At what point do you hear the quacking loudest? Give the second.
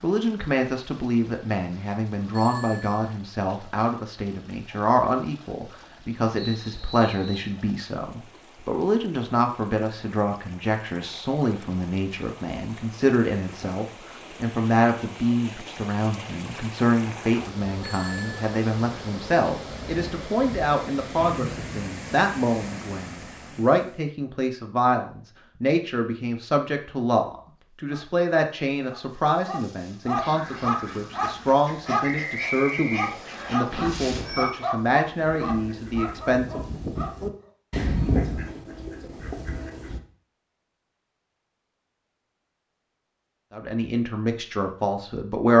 38 s.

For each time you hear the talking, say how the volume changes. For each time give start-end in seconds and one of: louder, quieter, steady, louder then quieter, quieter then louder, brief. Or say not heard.
0.0-36.6 steady
43.5-45.5 brief.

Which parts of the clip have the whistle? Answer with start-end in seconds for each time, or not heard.
6.3-7.5, 21.1-21.9, 32.0-33.5.